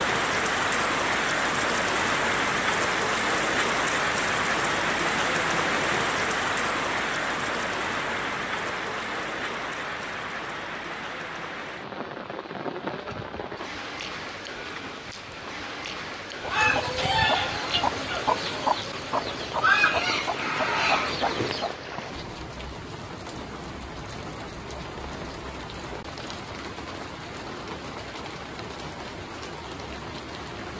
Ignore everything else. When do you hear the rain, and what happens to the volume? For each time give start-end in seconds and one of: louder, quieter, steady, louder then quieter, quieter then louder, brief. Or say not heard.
0.0-30.7 quieter.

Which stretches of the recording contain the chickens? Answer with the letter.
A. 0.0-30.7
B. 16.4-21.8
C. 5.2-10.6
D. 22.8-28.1
B.